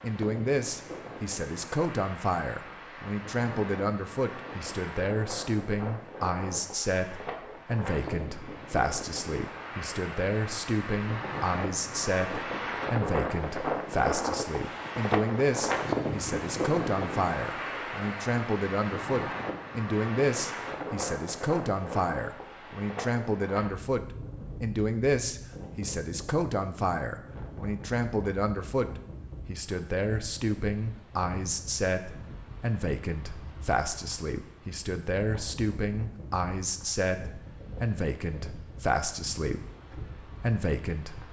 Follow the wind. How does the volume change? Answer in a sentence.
The loudness of the wind goes up, then down.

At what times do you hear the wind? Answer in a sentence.
The wind can be heard from 0.0 to 41.2 s.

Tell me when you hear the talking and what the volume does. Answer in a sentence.
You can hear the talking from 0.0 to 41.2 s, at a steady volume.